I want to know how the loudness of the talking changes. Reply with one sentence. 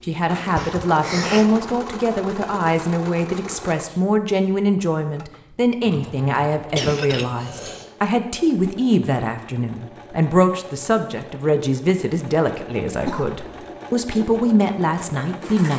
The loudness of the talking stays about the same.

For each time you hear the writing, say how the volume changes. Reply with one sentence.
The writing can't be heard in this clip.